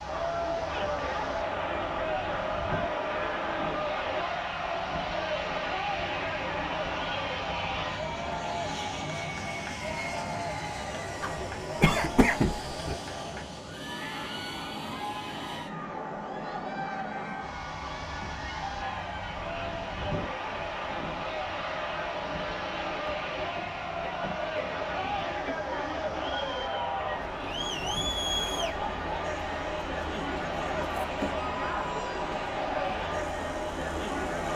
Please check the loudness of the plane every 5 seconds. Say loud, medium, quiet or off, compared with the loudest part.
loud, loud, loud, loud, loud, medium, medium.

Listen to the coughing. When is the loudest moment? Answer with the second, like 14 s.
12 s.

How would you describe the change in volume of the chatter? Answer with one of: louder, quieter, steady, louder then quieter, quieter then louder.
quieter then louder.